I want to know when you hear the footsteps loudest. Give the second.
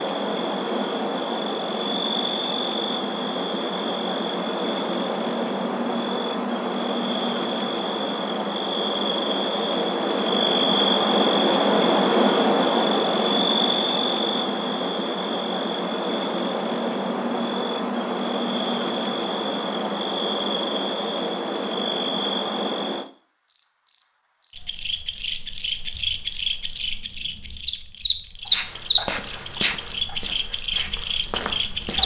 30 s.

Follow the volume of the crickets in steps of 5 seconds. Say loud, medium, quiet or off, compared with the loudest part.
medium, medium, loud, medium, medium, medium, medium.